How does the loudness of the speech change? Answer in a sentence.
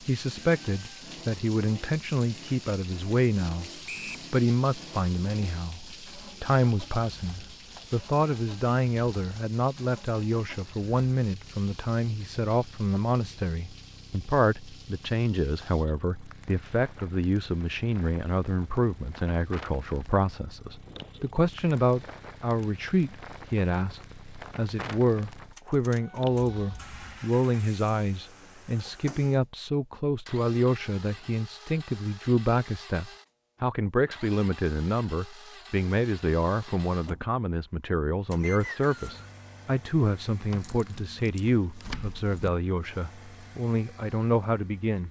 The volume of the speech stays about the same.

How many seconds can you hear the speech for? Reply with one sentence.
The speech can be heard for 44 seconds in total.